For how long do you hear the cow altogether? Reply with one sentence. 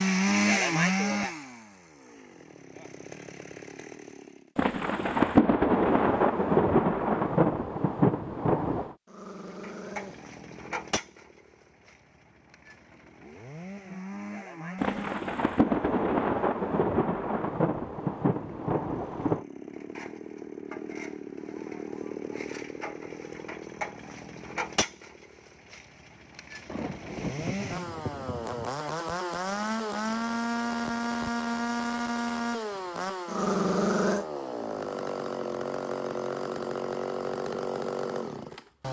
The cow can't be heard in this clip.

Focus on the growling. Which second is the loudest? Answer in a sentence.
The volume of the growling peaks at 34 seconds.